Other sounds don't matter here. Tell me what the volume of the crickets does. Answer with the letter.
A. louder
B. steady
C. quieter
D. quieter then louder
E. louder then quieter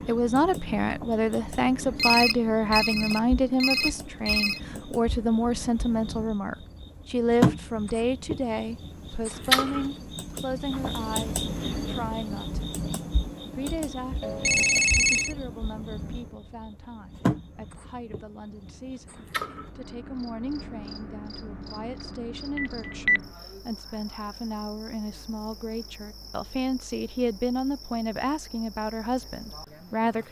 E.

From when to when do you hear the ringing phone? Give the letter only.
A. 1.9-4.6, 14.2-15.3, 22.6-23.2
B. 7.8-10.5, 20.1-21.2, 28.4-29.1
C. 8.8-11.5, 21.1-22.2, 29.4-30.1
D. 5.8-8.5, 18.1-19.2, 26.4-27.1
A.